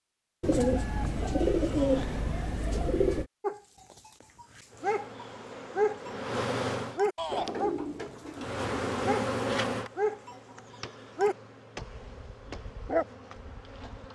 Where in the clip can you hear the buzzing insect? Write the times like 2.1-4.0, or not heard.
4.7-7.0, 8.3-14.1.